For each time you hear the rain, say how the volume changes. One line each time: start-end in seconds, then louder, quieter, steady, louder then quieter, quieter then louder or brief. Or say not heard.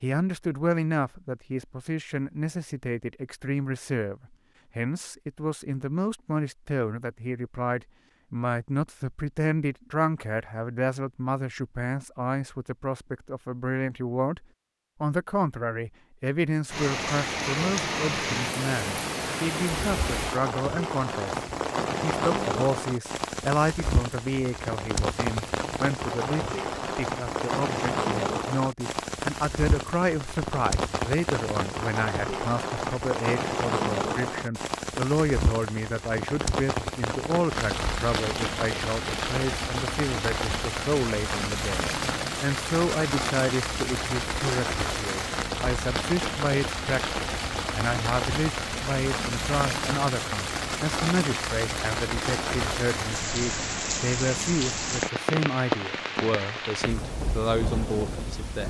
16.7-58.6 steady.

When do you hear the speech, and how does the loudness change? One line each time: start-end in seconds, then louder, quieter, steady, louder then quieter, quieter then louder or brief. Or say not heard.
0.0-58.6 steady.